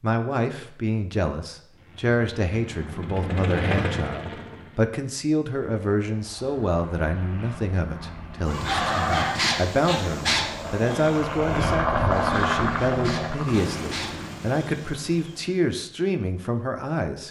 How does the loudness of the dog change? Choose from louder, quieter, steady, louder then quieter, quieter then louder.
quieter.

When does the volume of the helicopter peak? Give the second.
12 s.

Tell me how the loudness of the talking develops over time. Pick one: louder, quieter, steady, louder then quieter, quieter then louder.
steady.